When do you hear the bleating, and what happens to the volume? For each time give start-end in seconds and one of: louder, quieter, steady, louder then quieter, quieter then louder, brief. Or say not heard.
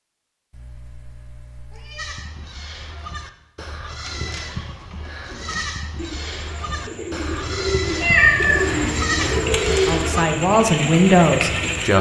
1.9-10.2 louder.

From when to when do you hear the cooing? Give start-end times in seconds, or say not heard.
3.9-11.9.